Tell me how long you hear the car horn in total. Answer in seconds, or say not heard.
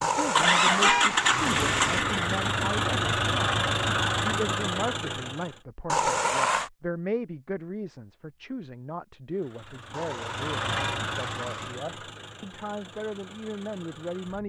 5 s.